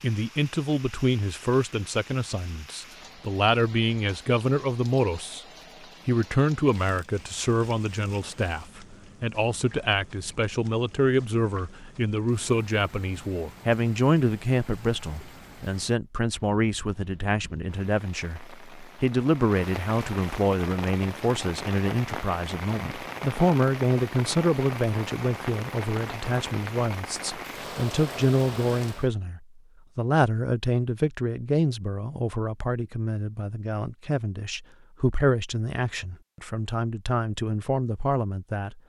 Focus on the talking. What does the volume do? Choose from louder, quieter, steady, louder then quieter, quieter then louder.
steady.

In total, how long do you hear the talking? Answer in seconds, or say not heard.
38 s.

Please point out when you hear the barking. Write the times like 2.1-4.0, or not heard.
not heard.